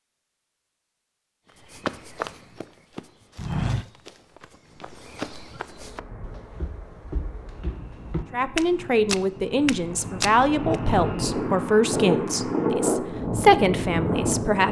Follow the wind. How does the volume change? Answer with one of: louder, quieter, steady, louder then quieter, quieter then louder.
louder.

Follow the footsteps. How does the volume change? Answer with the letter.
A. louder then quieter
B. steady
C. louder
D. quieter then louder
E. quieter
D.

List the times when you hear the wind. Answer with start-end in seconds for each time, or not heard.
5.7-14.6.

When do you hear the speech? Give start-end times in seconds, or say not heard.
8.3-14.6.